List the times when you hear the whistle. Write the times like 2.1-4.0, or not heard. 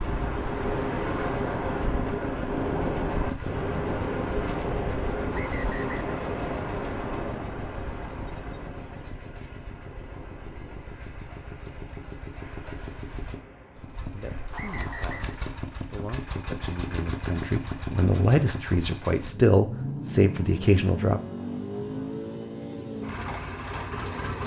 5.3-6.2, 14.5-15.3.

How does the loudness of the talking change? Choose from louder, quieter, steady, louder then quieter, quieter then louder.
louder.